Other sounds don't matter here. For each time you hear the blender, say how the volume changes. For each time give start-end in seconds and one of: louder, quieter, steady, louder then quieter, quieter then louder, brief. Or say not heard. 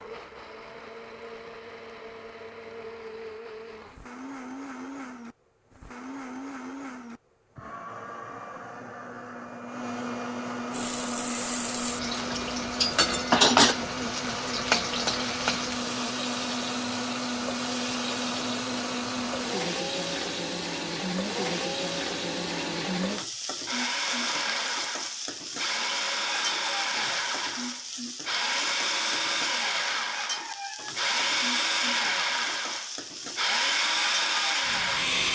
0.0-35.2 louder.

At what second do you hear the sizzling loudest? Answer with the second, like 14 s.
15 s.